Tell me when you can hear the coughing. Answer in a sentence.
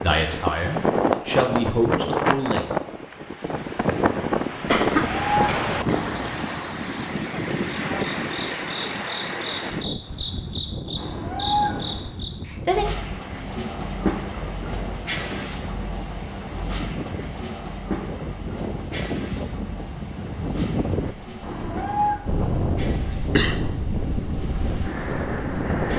The coughing can be heard from 4.7 to 6.1 s and from 23.1 to 23.8 s.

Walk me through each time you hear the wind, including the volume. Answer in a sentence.
You can hear the wind from 0.0 to 25.9 s, getting quieter then louder.